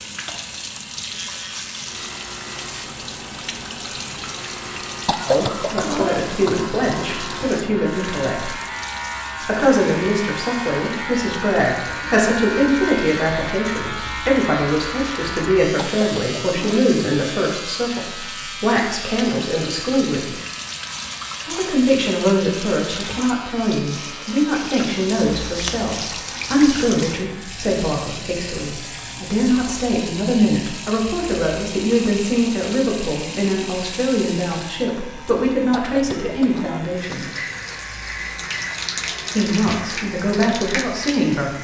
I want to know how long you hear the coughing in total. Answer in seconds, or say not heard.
4 s.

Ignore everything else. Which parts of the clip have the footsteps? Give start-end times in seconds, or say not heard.
not heard.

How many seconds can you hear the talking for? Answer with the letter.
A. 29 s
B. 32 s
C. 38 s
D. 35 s
B.